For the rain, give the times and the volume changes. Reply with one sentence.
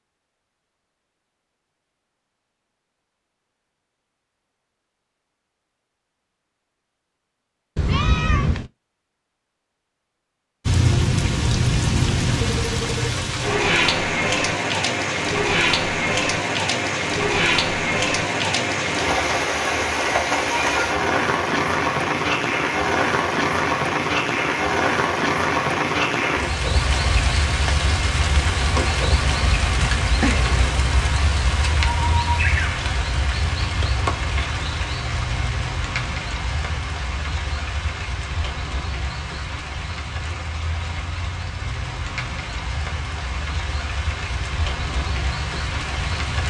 You can hear the rain from 10.7 to 46.4 s, getting quieter.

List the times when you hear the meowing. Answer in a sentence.
You can hear the meowing from 7.8 to 8.7 s and from 29.1 to 30.6 s.